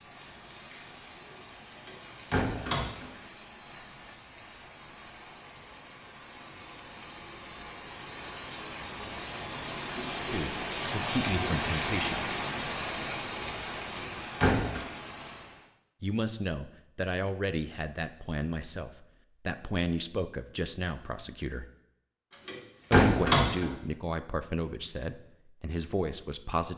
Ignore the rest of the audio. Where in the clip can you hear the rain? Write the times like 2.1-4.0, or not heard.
0.0-15.7.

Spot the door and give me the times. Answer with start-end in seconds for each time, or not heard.
1.9-3.1, 13.9-14.8, 22.4-23.7.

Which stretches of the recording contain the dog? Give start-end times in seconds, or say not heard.
not heard.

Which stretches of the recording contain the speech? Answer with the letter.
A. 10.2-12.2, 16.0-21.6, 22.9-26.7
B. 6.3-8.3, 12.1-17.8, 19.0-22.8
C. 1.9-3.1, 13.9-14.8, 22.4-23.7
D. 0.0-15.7
A.